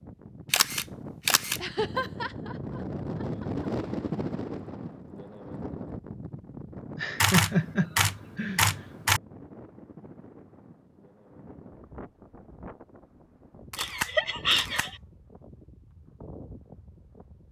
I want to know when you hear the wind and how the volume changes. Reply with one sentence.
You can hear the wind from 0.0 to 17.4 s, getting quieter.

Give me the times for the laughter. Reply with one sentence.
The laughter can be heard from 1.6 to 3.6 s, from 7.0 to 8.8 s and from 13.8 to 14.9 s.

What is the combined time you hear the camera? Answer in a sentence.
You can hear the camera for 4 seconds altogether.